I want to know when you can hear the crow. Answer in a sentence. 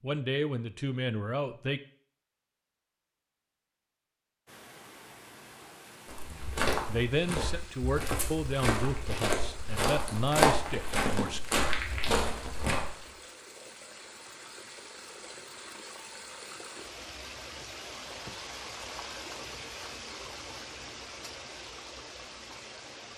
You can't hear the crow here.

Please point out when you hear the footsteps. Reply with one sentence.
You can hear the footsteps from 6.0 to 13.1 s.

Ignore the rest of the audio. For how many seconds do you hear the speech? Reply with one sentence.
The speech can be heard for 7 seconds in total.